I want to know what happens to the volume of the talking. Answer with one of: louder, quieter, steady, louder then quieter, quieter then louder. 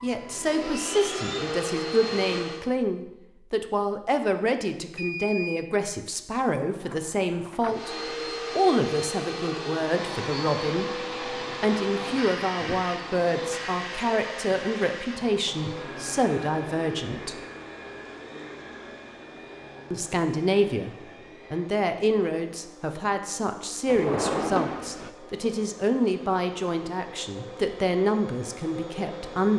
steady.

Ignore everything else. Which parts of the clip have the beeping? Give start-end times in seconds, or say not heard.
5.0-5.7.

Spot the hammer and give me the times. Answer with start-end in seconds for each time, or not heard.
not heard.